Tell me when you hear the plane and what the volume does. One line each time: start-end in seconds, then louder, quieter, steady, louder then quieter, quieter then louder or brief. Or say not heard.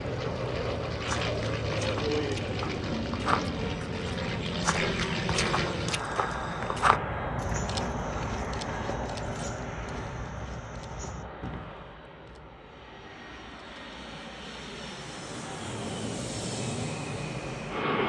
0.0-18.0 quieter then louder.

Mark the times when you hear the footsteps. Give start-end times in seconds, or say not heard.
1.0-11.8.